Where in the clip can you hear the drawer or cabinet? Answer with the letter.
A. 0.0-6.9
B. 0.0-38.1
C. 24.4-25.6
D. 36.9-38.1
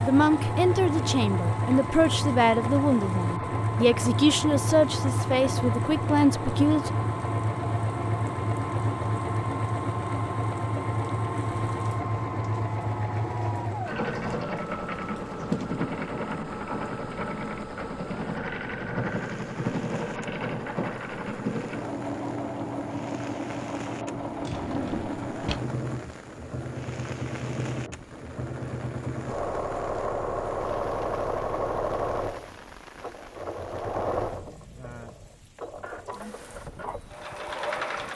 C.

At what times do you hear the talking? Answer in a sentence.
The talking can be heard from 0.0 to 6.9 s.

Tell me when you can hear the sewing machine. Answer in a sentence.
The sewing machine can be heard from 0.0 to 38.1 s.